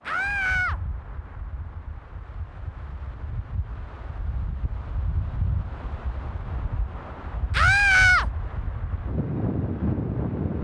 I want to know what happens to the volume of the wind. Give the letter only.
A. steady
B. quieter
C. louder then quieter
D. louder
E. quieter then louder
D.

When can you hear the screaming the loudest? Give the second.
8 s.